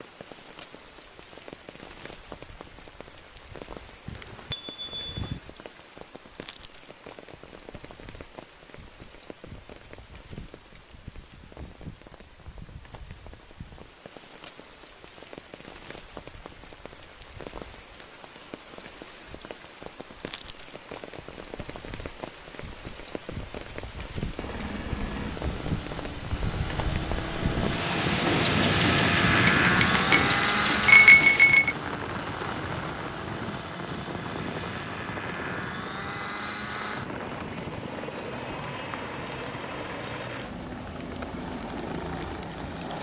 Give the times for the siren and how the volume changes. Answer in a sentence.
You can't hear the siren here.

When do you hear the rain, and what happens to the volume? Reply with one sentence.
You can hear the rain from 0.0 to 42.9 s, getting louder then quieter.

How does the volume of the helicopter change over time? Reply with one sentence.
The loudness of the helicopter goes up, then down.